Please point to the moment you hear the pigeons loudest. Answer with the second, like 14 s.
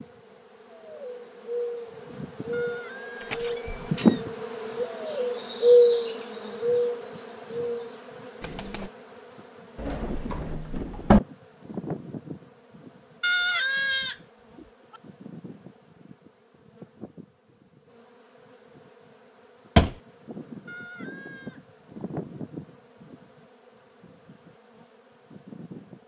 6 s.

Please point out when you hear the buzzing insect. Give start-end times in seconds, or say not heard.
0.0-26.0.